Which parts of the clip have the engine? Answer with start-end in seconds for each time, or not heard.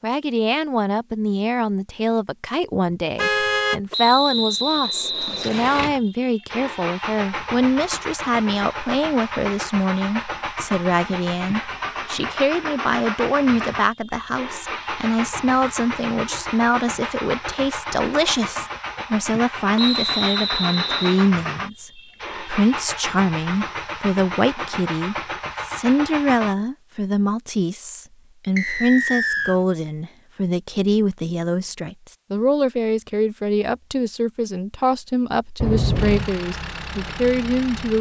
5.5-26.6, 36.0-37.9.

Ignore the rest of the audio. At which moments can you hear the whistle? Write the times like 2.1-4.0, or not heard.
3.9-5.9, 19.8-21.3, 28.6-29.6.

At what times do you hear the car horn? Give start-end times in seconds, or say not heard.
3.1-3.8, 35.6-36.3.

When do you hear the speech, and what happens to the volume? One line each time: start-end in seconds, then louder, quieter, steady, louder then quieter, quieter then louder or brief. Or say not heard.
0.0-37.9 steady.